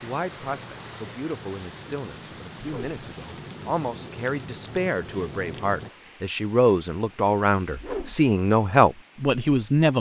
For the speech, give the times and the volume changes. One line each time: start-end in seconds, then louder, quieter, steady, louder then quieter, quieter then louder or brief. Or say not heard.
0.0-9.9 louder.